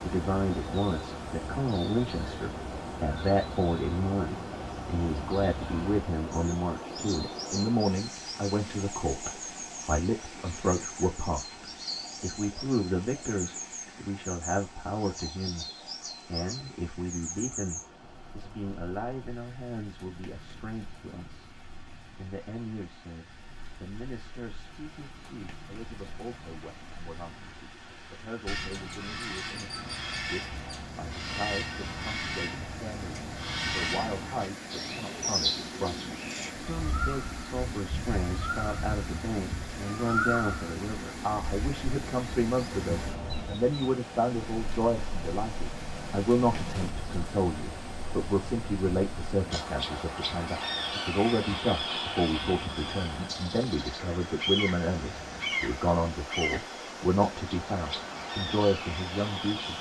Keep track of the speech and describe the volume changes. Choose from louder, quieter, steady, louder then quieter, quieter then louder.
quieter then louder.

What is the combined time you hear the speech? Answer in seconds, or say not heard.
59 s.